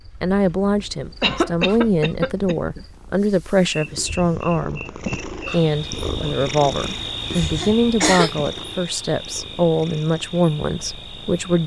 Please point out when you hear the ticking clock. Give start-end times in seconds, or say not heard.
not heard.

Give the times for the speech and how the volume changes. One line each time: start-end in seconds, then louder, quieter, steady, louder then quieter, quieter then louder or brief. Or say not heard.
0.2-11.6 steady.